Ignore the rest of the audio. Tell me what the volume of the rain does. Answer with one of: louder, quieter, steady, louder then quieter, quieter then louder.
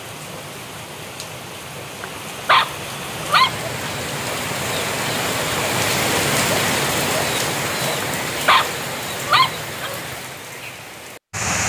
louder then quieter.